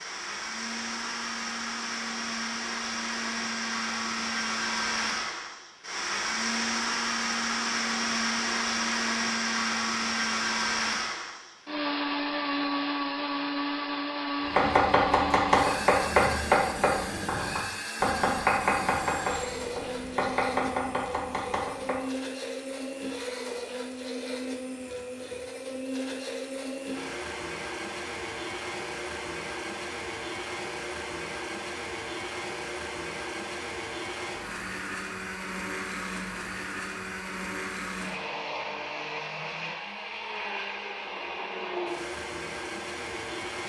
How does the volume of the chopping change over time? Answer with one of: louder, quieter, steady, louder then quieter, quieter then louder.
quieter.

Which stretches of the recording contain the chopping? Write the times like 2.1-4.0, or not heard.
14.5-22.0.